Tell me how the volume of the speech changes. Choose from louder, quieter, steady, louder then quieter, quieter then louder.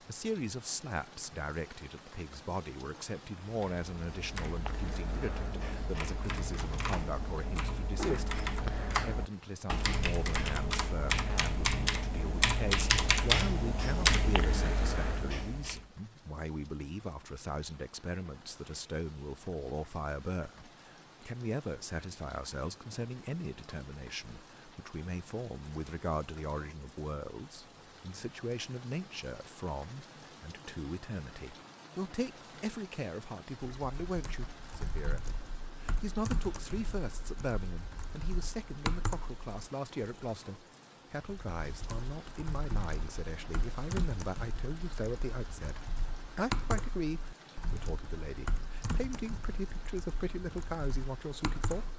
steady.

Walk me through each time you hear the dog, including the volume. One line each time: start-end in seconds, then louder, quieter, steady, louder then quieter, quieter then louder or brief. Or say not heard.
not heard.